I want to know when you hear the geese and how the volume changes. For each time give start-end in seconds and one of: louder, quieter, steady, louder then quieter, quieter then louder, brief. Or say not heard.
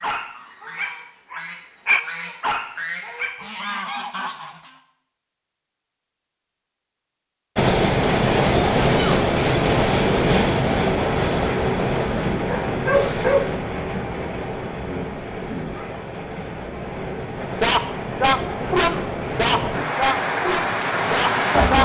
0.0-4.8 louder.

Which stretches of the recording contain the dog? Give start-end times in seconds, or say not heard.
0.0-3.9, 12.3-13.7, 17.6-21.7.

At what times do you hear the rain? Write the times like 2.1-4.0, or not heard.
7.5-21.7.